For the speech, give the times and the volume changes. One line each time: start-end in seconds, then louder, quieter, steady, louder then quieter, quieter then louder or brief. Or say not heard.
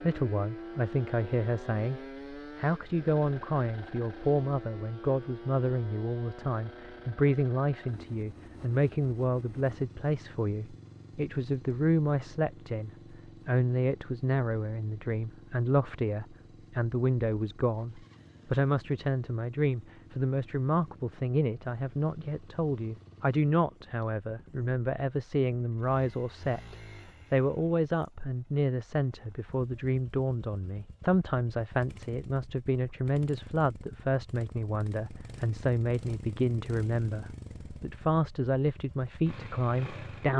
0.0-40.3 steady.